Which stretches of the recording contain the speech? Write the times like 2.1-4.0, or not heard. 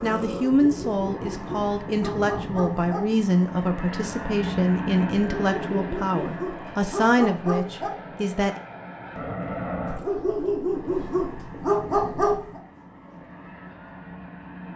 0.0-8.6.